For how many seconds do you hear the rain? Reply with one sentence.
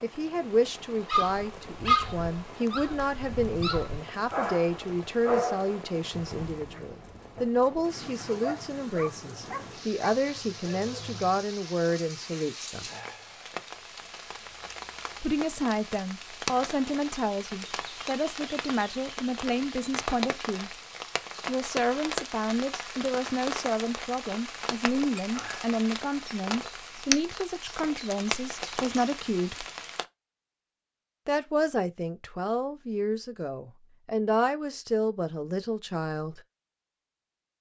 You can hear the rain for 30 seconds altogether.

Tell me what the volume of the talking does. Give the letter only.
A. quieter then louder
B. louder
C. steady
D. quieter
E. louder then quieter
C.